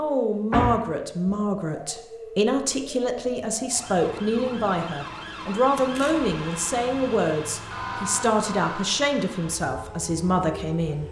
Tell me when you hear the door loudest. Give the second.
1 s.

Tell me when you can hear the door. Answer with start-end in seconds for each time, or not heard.
0.5-1.3, 5.8-6.3.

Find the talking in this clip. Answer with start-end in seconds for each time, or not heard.
0.0-11.0.